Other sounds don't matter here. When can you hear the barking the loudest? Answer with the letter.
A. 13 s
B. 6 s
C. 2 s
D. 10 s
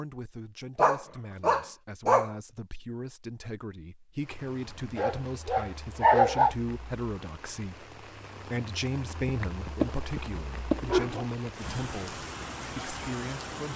B.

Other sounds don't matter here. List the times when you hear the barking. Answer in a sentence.
The barking can be heard from 0.8 to 2.3 s, from 5.0 to 6.5 s and from 9.2 to 11.2 s.